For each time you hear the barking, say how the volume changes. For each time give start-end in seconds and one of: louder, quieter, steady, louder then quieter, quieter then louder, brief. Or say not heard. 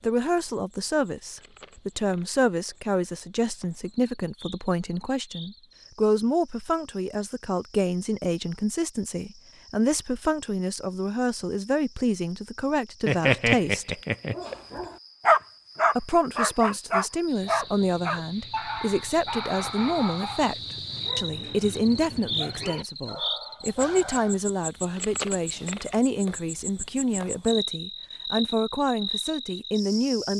13.1-24.4 quieter.